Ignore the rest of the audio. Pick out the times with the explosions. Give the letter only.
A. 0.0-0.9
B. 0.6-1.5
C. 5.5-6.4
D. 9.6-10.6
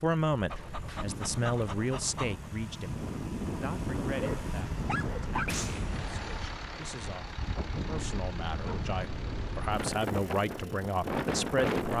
C.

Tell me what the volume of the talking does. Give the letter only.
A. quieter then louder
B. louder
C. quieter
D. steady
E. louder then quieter
A.